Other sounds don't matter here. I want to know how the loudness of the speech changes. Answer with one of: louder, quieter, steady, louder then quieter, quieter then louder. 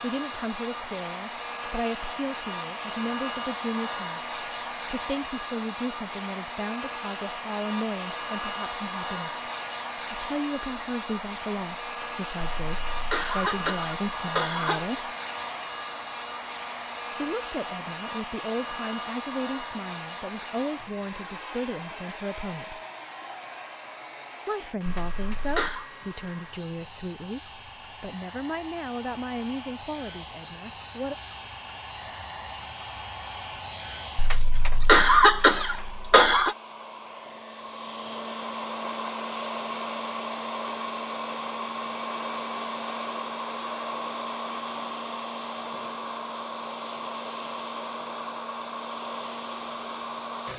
steady.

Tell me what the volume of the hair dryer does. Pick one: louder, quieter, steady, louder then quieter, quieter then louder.
quieter then louder.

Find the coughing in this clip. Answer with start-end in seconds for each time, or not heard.
12.4-14.9, 24.9-25.9, 34.1-36.5.